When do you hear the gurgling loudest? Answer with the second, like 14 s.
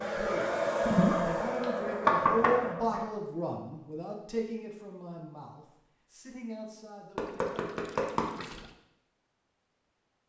1 s.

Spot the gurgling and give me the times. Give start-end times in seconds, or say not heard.
0.8-1.4, 7.2-8.8.